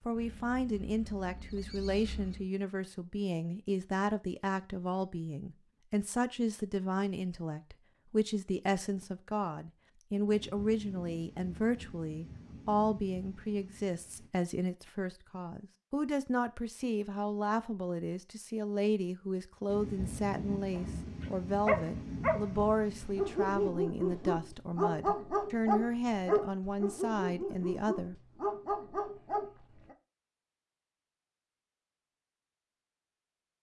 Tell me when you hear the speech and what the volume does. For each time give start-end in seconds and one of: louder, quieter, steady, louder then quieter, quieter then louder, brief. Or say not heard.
0.0-28.1 steady.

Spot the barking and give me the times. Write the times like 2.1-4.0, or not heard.
20.5-29.9.